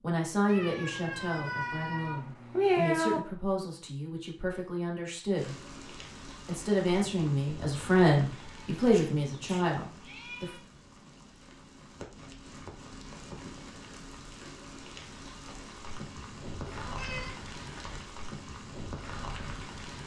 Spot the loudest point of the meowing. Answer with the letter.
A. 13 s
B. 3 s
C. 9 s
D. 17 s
B.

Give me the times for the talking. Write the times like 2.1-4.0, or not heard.
0.0-5.5, 6.5-10.6.